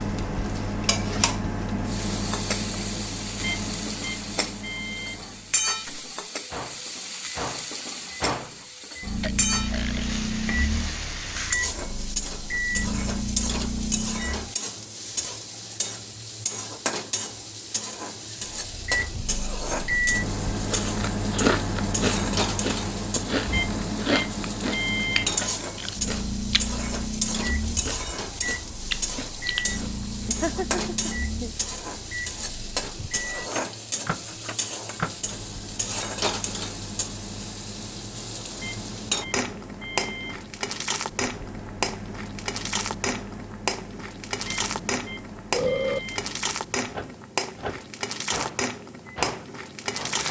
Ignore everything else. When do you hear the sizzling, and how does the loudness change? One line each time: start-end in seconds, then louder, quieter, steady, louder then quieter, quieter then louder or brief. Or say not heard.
0.0-50.2 steady.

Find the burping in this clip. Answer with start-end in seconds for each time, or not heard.
9.2-10.1, 45.5-46.0.